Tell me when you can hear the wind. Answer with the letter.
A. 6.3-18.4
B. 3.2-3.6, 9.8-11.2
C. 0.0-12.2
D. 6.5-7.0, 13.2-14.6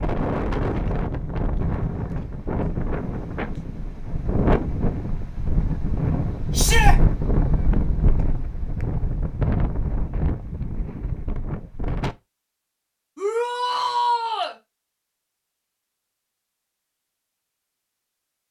C.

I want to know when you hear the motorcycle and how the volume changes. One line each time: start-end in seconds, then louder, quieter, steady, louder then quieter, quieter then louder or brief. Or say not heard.
not heard.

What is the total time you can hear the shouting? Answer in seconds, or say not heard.
2 s.